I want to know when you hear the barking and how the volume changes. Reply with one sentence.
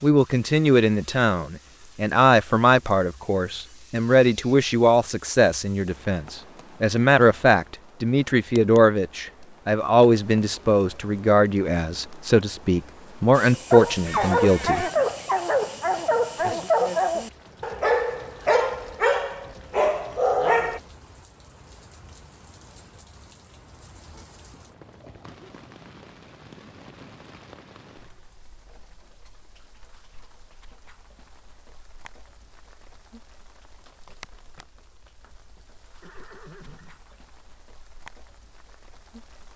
The barking can be heard from 13.3 to 20.8 s, at a steady volume.